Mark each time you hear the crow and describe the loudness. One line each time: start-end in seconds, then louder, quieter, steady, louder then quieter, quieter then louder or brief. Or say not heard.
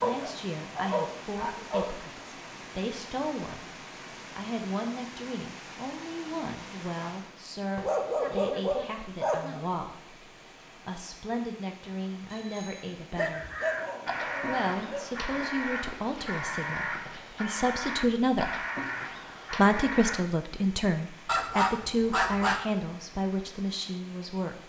13.3-20.2 steady.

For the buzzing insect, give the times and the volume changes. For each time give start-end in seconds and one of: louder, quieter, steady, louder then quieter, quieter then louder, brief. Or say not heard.
not heard.